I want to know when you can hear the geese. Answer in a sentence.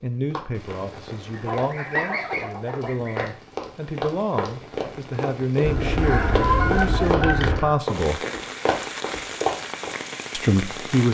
The geese can be heard from 1.4 to 3.2 s and from 5.6 to 7.8 s.